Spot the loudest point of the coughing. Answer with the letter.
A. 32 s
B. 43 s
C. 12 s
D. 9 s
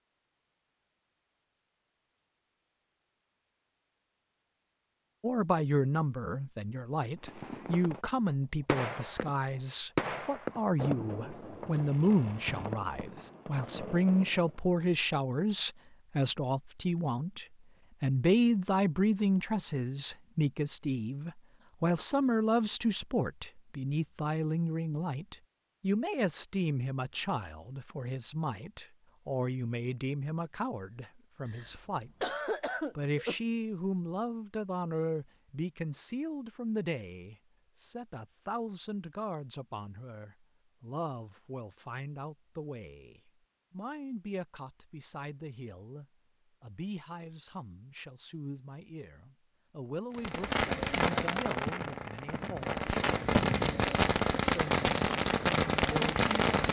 A.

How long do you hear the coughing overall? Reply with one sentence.
You can hear the coughing for 3 seconds altogether.